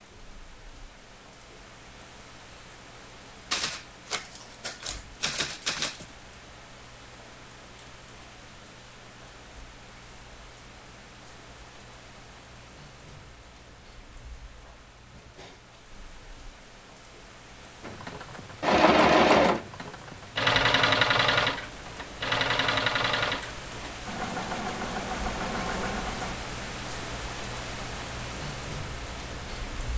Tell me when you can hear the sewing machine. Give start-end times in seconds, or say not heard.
17.9-26.4.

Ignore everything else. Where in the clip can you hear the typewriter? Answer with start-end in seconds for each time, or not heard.
3.5-6.0.